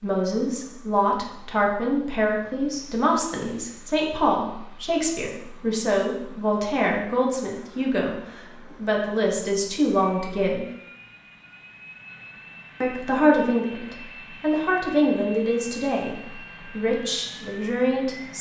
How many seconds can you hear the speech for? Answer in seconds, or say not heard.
16 s.